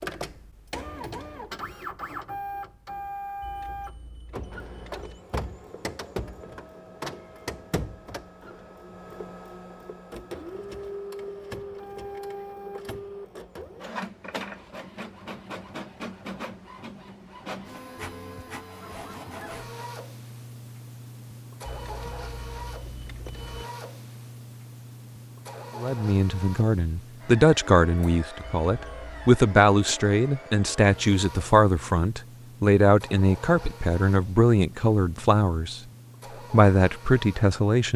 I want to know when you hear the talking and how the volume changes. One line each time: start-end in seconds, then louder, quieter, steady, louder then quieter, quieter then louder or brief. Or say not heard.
25.8-35.8 steady
36.5-37.9 brief.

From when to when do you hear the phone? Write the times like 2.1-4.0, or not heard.
not heard.